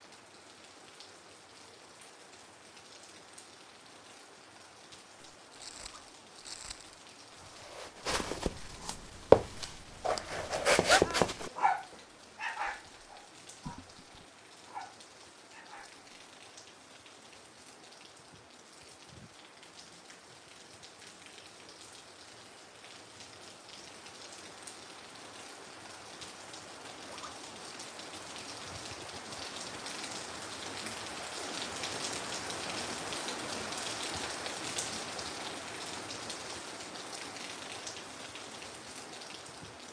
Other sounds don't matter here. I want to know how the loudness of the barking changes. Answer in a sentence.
The loudness of the barking goes down, then up.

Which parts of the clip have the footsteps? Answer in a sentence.
You can hear the footsteps from 5.2 to 11.5 s.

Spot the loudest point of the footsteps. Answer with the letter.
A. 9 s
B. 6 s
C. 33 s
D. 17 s
A.